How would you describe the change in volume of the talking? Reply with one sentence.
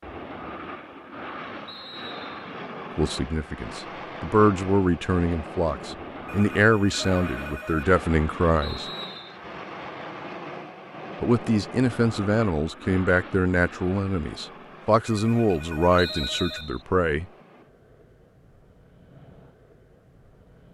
The volume of the talking stays about the same.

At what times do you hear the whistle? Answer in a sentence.
The whistle can be heard from 1.6 to 2.5 s, from 8.6 to 9.4 s and from 15.9 to 16.9 s.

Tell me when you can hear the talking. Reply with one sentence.
The talking can be heard from 3.0 to 8.8 s and from 11.2 to 17.2 s.